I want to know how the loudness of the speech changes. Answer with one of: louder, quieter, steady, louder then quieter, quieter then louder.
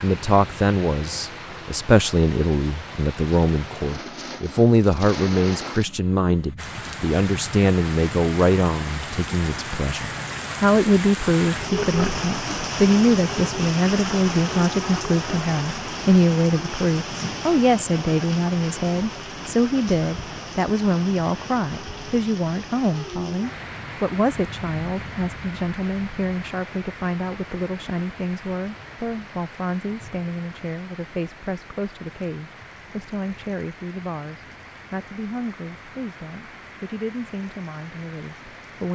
quieter.